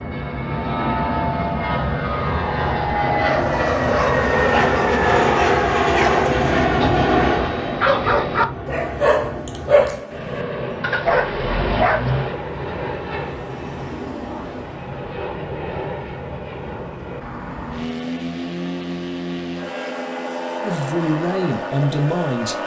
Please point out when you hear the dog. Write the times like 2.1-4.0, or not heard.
3.4-12.3.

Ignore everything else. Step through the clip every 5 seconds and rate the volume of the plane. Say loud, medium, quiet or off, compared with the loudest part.
loud, loud, medium, medium, medium.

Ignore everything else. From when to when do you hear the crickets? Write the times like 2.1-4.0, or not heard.
not heard.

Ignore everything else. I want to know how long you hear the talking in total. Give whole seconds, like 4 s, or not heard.
2 s.